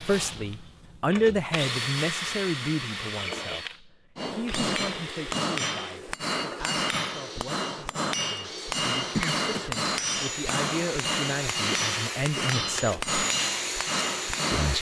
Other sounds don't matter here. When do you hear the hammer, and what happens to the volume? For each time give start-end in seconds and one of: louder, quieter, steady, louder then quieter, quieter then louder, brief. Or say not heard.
4.2-14.7 steady.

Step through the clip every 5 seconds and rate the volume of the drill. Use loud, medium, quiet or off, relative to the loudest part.
loud, medium, loud.